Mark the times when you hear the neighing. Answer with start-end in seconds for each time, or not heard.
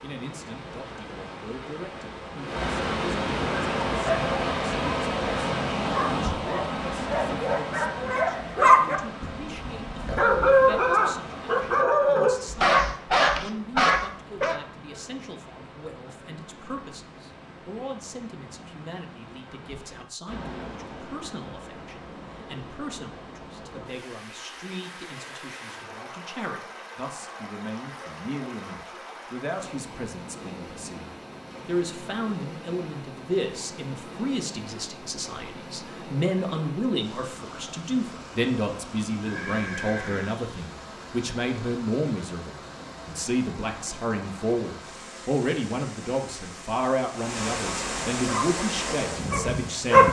39.2-40.4.